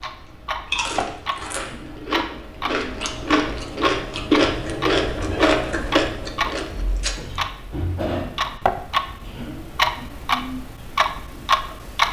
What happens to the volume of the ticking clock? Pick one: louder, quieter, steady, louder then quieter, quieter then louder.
louder.